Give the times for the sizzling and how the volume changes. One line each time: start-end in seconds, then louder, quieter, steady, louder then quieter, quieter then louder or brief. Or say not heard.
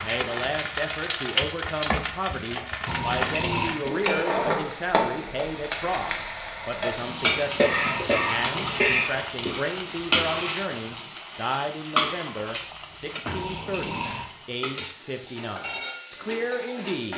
0.0-17.1 quieter.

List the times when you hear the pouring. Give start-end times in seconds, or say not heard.
2.9-3.8, 7.0-9.0, 13.2-14.3.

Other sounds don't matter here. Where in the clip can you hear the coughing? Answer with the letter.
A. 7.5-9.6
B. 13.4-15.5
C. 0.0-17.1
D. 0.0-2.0
A.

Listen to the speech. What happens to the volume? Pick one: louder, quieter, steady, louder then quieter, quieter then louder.
steady.